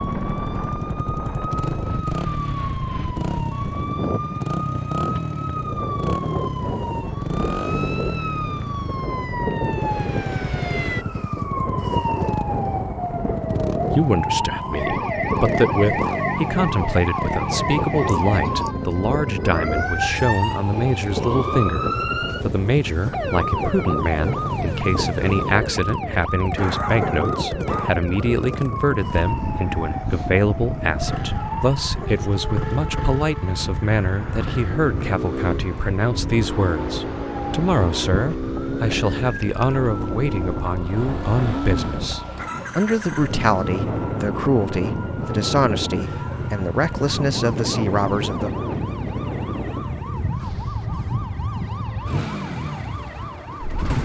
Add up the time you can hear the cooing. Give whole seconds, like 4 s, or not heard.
not heard.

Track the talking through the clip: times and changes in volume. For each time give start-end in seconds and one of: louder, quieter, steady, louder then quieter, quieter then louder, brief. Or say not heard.
13.9-48.5 steady.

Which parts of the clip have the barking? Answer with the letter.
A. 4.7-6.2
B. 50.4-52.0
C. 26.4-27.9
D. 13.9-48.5
C.